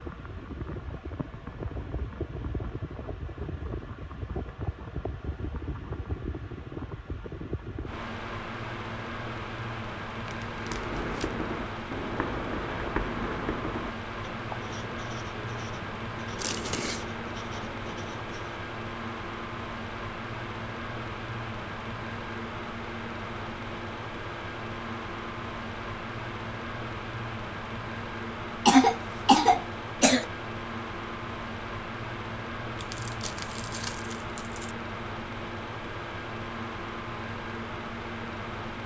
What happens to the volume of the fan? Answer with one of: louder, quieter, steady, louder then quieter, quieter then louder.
steady.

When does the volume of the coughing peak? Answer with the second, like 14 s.
29 s.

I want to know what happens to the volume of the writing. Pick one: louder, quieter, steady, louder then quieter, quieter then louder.
quieter.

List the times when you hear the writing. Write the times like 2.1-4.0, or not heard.
10.7-18.6.